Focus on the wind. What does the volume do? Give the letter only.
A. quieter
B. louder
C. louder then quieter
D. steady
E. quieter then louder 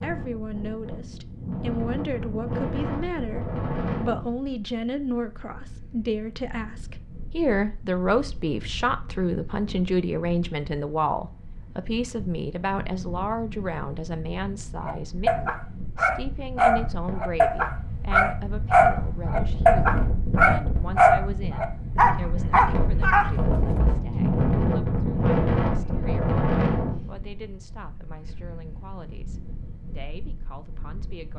E.